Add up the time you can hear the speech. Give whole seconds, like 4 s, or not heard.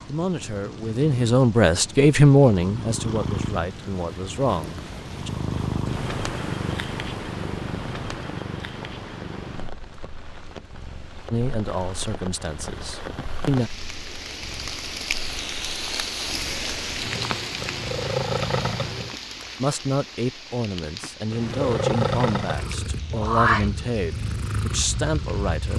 14 s.